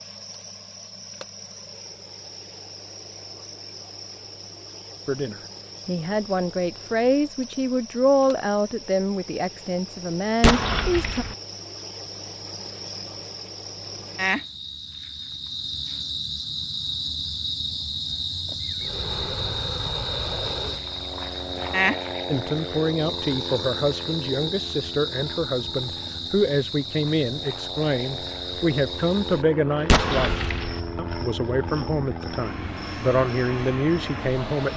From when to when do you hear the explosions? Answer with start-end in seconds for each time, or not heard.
10.4-11.3, 29.9-30.8.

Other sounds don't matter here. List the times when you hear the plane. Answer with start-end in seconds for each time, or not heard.
18.6-34.7.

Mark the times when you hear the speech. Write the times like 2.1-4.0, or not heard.
5.0-11.2, 22.3-34.7.